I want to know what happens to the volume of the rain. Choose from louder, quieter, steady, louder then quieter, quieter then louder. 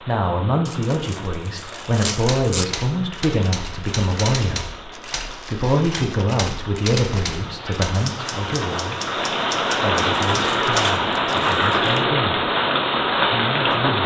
louder.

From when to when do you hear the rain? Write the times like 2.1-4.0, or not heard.
0.0-14.0.